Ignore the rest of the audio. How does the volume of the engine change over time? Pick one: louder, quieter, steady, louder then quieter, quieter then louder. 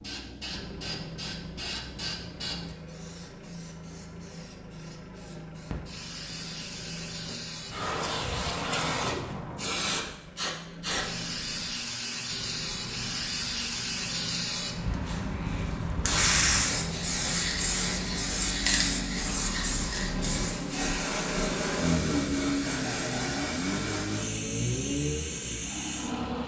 louder.